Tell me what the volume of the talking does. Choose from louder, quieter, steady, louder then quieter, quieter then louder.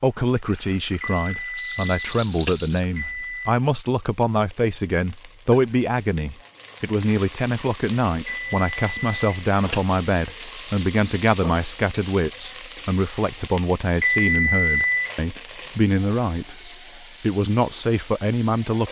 steady.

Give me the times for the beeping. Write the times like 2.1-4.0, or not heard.
1.0-3.5, 8.2-9.8, 14.0-15.2.